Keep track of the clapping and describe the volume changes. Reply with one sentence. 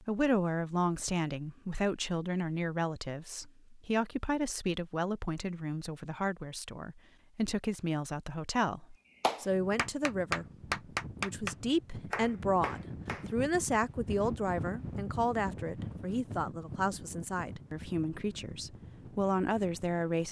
The loudness of the clapping goes up, then down.